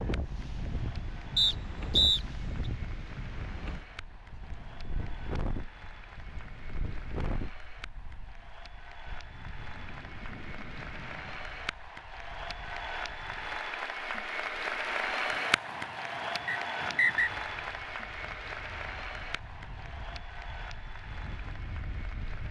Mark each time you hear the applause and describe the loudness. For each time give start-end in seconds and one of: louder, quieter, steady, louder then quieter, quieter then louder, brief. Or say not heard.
0.0-22.4 louder then quieter.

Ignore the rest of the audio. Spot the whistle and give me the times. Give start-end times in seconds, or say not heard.
1.4-2.2, 16.4-17.3.